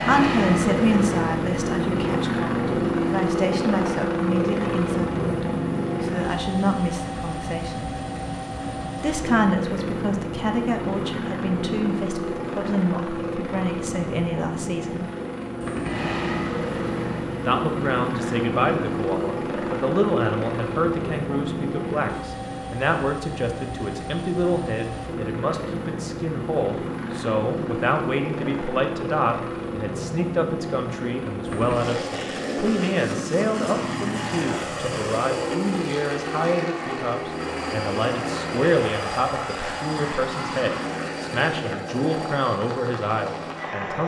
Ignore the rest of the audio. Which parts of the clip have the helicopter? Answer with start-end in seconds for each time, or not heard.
0.0-44.0.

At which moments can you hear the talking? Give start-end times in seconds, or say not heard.
0.0-7.9, 8.9-15.1, 17.4-44.0.